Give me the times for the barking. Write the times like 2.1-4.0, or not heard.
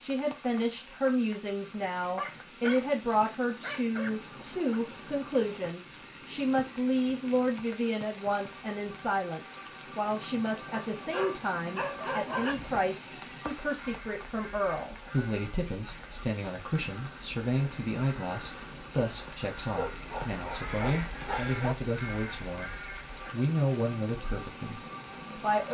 2.1-4.8, 10.9-12.6, 19.8-21.8.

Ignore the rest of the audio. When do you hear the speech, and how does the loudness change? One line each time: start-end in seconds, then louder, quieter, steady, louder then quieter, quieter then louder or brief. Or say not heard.
0.0-25.6 steady.